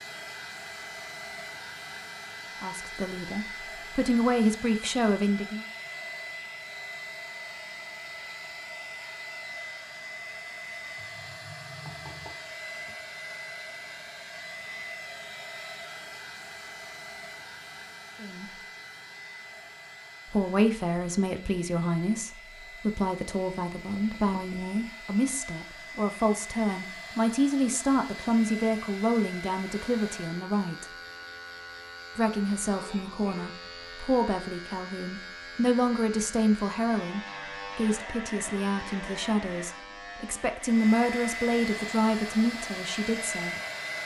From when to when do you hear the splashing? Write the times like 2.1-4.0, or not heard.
not heard.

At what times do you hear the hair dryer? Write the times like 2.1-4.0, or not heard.
0.0-30.4, 40.6-44.0.